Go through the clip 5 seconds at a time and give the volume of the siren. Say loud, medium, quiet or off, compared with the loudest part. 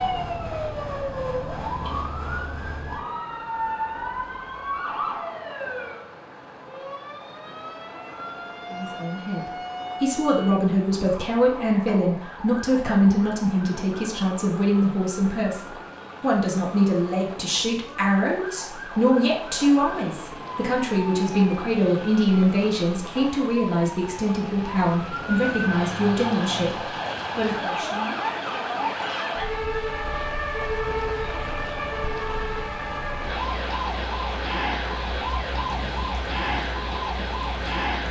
loud, medium, medium, medium, medium, loud, loud, loud.